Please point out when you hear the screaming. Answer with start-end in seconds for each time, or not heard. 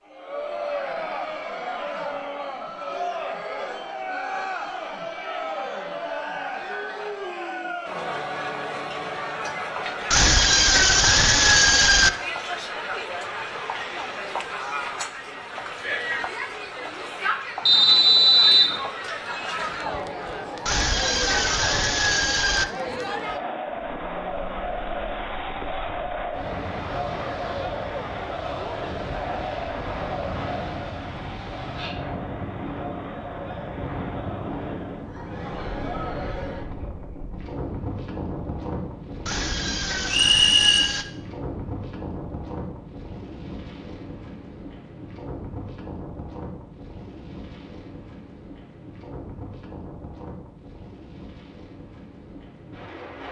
10.1-12.1, 20.6-22.6, 39.2-41.0.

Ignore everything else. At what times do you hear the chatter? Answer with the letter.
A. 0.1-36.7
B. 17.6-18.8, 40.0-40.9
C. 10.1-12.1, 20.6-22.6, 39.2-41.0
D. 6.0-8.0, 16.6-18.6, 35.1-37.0
A.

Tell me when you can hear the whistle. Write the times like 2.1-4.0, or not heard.
17.6-18.8, 40.0-40.9.